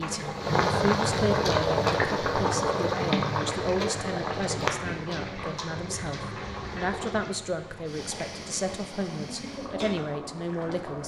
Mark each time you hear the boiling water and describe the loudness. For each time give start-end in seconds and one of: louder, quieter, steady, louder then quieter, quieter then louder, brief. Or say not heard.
0.0-11.0 quieter.